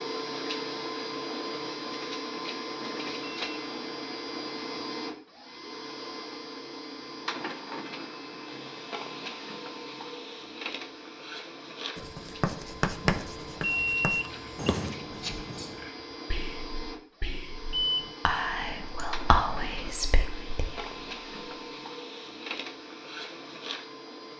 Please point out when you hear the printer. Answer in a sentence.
The printer can be heard from 0.0 to 24.3 s.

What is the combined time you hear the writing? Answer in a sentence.
The writing can be heard for 4 seconds in total.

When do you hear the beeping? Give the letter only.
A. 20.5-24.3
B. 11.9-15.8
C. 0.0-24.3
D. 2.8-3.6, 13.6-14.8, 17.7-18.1
D.